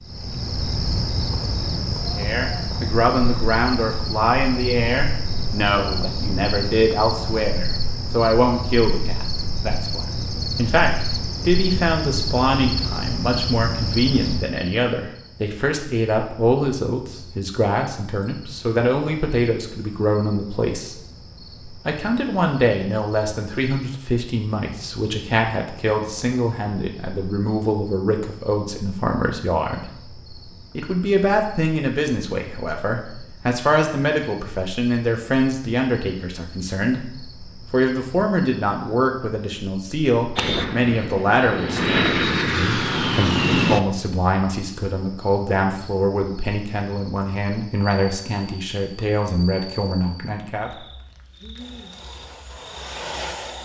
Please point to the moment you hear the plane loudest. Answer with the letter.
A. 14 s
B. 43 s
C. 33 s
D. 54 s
B.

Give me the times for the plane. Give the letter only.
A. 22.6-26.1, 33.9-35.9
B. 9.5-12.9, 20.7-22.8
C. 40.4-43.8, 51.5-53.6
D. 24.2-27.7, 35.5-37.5
C.